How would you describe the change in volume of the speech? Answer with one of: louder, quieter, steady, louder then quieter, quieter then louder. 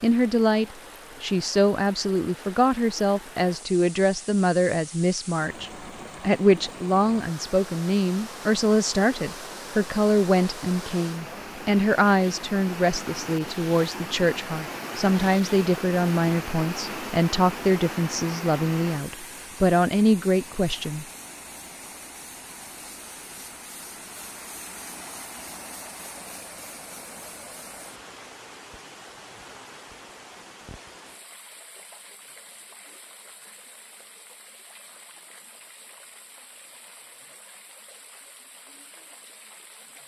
steady.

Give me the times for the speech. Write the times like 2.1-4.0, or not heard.
0.0-21.1.